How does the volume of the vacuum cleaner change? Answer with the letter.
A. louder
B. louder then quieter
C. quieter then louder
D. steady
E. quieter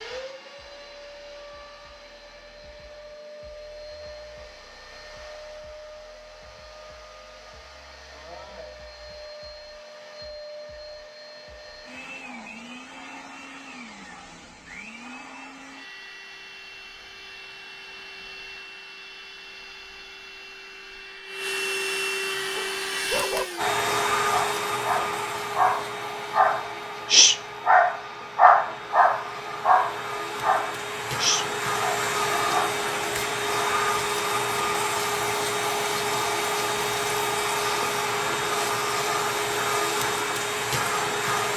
A.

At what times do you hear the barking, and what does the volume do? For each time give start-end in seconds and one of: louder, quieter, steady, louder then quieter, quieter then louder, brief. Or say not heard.
22.5-32.9 louder then quieter.